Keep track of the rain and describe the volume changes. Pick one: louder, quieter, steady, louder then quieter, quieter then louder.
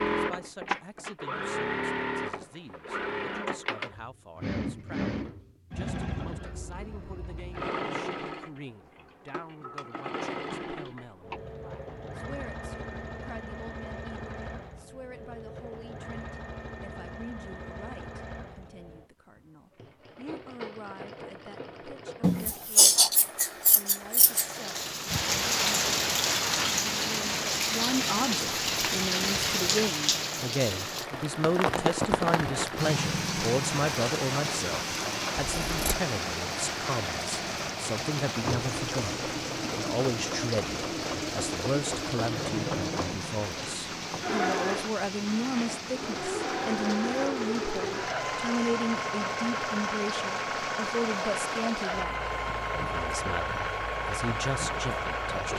quieter.